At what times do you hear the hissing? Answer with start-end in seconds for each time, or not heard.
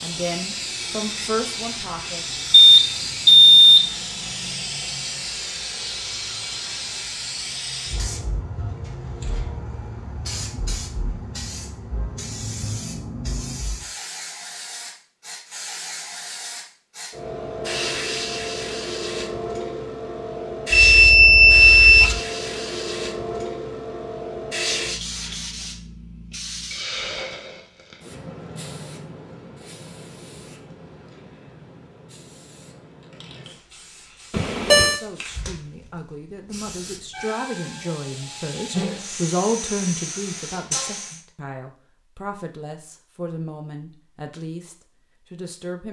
0.0-41.2.